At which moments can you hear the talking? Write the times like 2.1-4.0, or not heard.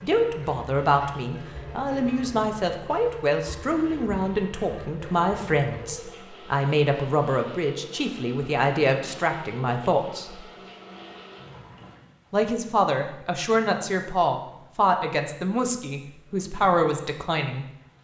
0.0-10.4, 12.3-17.6.